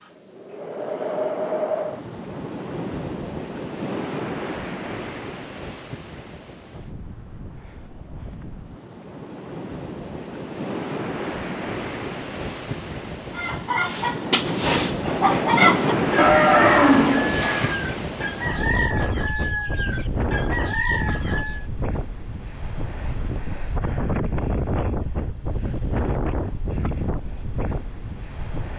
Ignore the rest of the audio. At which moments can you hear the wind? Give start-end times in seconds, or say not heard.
0.0-28.7.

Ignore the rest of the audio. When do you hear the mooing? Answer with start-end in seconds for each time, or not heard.
16.1-17.8.